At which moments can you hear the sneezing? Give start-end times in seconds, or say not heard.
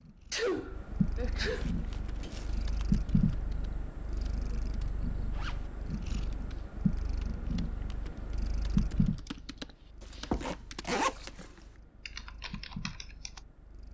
0.3-1.8.